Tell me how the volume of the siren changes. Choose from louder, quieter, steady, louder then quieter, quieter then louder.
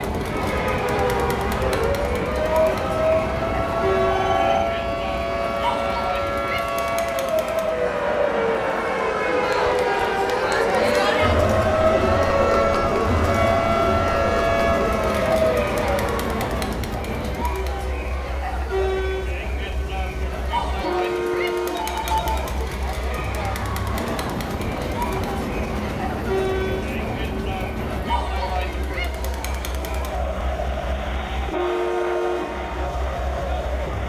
steady.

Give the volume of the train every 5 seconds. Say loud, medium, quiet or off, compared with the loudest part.
loud, medium, loud, loud, loud, loud, loud.